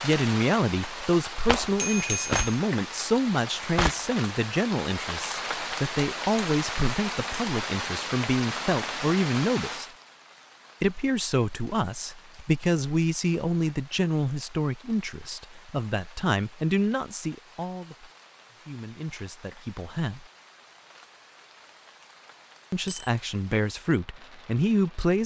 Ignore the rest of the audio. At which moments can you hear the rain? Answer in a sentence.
You can hear the rain from 0.0 to 25.2 s.